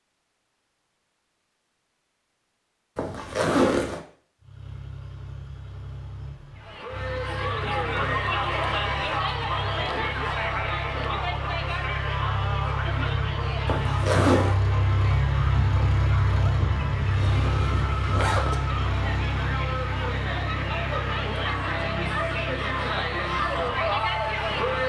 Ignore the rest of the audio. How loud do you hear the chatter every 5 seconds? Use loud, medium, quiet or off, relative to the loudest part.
off, loud, loud, medium, loud.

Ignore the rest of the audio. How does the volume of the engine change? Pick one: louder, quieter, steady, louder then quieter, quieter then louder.
louder then quieter.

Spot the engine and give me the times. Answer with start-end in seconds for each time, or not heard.
4.4-24.8.